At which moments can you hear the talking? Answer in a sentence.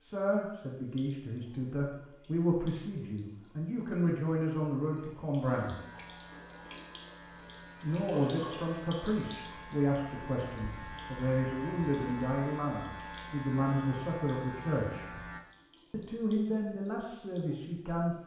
You can hear the talking from 0.0 to 5.8 s, from 7.8 to 15.1 s and from 15.9 to 18.1 s.